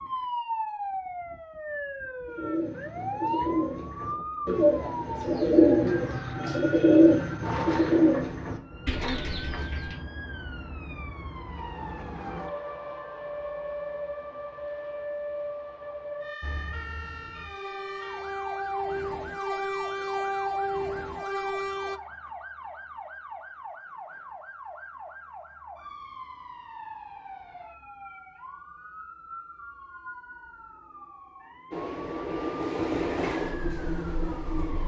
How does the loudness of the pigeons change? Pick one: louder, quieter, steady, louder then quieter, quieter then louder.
louder then quieter.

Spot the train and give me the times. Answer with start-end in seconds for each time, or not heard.
16.4-22.0, 31.7-34.8.